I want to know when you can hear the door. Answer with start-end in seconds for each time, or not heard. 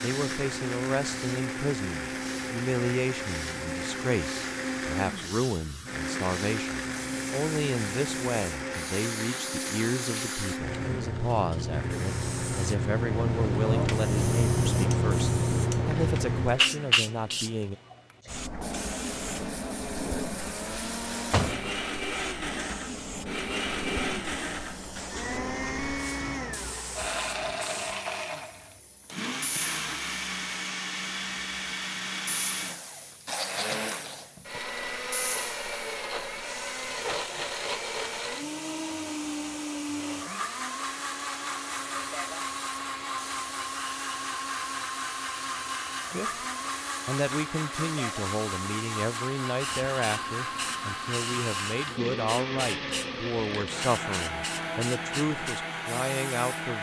20.7-21.7.